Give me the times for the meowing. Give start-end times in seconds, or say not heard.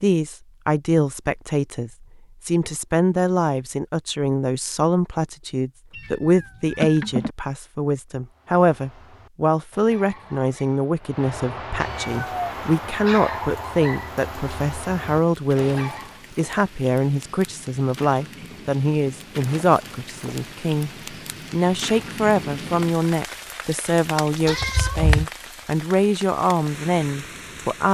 6.0-7.3, 11.8-12.3, 24.4-25.2.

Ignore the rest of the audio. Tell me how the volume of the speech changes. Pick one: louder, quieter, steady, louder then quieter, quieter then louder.
steady.